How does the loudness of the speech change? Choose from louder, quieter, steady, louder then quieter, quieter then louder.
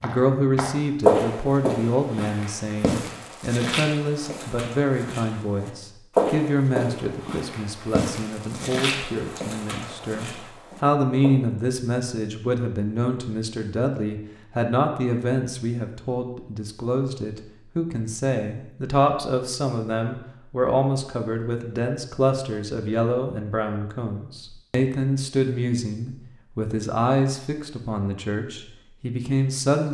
steady.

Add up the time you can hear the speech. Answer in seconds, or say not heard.
30 s.